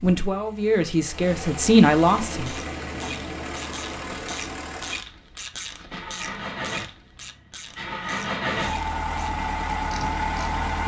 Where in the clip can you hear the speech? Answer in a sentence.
You can hear the speech from 0.0 to 2.5 s.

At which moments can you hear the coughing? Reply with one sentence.
You can't hear the coughing here.